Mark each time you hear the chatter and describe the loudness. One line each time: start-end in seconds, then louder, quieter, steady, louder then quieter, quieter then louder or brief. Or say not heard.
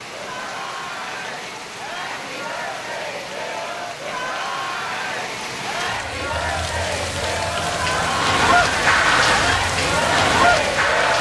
0.0-11.1 louder.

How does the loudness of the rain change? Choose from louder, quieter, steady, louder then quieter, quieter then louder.
louder.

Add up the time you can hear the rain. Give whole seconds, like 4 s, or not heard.
11 s.